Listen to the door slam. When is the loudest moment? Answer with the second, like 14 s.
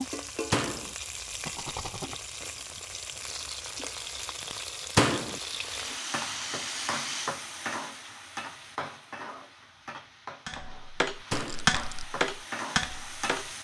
5 s.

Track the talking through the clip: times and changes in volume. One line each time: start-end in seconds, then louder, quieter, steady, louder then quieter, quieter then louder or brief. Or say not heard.
not heard.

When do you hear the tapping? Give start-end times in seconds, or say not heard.
10.4-13.5.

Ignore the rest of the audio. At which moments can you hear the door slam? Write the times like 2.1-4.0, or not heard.
0.5-0.9, 5.0-5.4, 11.3-11.8.